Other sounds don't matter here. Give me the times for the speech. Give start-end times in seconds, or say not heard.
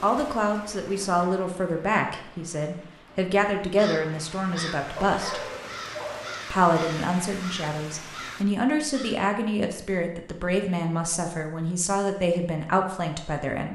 0.0-5.4, 6.5-13.7.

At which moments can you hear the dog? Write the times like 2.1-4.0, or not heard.
5.1-6.5.